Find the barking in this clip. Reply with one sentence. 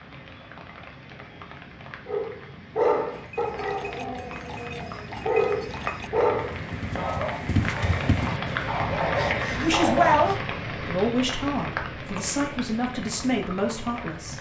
The barking can be heard from 2.0 to 10.3 s.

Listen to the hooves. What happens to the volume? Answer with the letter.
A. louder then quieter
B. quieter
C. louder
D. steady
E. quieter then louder
C.